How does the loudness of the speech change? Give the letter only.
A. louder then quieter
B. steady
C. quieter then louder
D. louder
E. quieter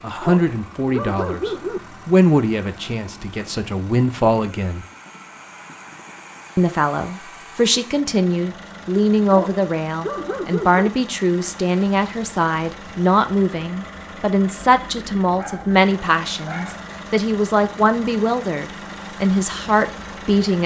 B.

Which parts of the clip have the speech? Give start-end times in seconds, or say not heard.
0.0-4.8, 6.5-20.6.